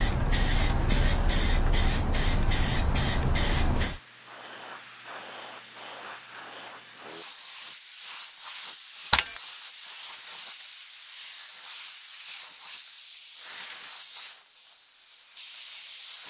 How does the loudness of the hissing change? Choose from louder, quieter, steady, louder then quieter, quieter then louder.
quieter.